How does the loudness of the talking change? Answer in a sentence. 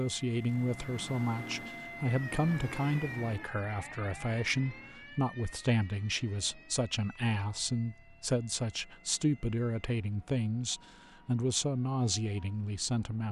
The loudness of the talking stays about the same.